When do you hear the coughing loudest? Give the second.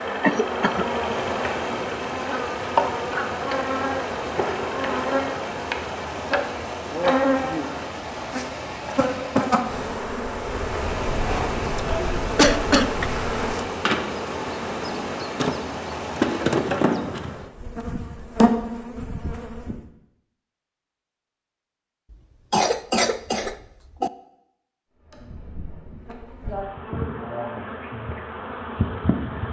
13 s.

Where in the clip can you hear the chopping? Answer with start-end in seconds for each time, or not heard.
not heard.